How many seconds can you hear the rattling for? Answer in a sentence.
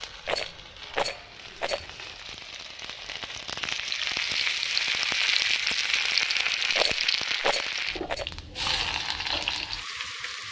The rattling can be heard for 3 seconds in total.